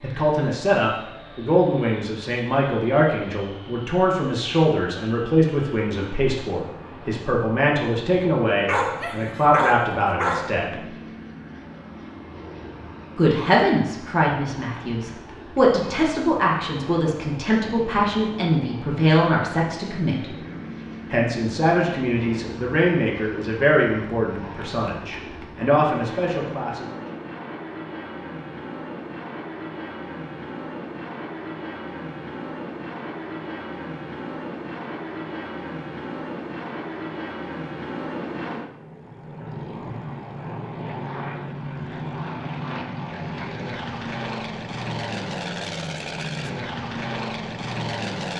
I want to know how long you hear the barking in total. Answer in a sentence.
The barking can be heard for 2 seconds in total.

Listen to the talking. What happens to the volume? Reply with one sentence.
The loudness of the talking stays about the same.